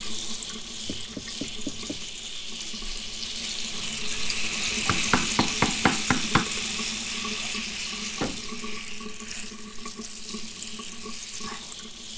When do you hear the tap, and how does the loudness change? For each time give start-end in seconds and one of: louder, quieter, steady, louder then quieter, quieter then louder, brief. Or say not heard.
0.0-12.1 louder then quieter.